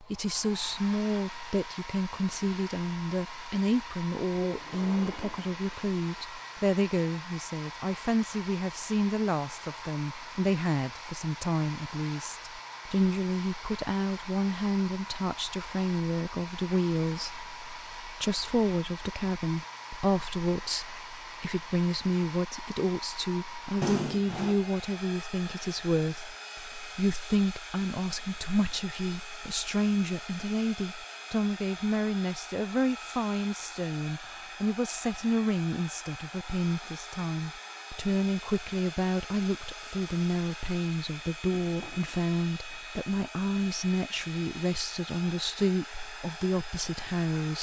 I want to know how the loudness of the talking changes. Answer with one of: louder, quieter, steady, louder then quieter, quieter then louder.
steady.